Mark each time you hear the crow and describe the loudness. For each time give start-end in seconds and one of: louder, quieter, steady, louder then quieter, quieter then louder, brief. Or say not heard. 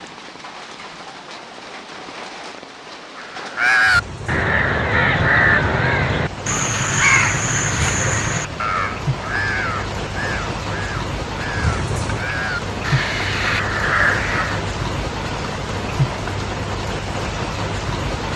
3.1-14.6 quieter then louder.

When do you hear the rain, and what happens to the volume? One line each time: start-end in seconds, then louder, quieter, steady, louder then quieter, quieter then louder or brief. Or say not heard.
0.0-18.3 louder.